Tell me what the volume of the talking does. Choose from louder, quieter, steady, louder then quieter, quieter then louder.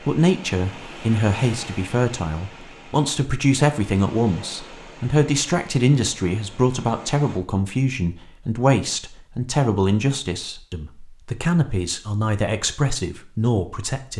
steady.